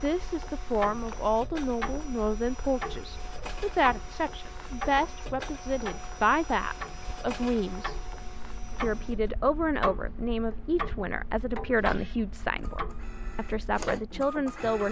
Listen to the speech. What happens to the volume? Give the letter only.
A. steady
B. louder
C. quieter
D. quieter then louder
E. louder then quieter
A.